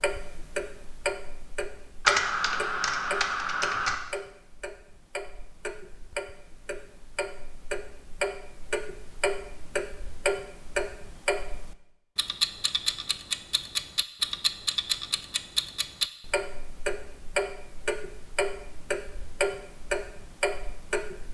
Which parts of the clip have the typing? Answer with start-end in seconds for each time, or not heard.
2.0-4.0.